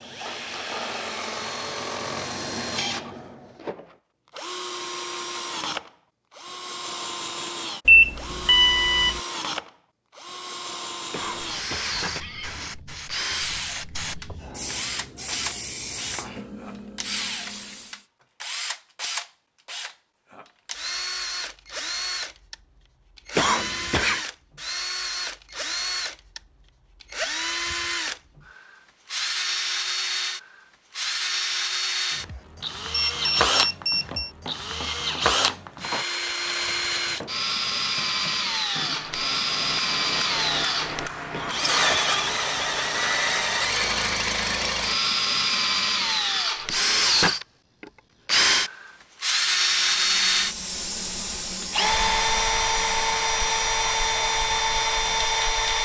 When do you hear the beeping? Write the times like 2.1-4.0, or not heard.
7.8-9.2, 33.1-34.3.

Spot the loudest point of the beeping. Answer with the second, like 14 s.
8 s.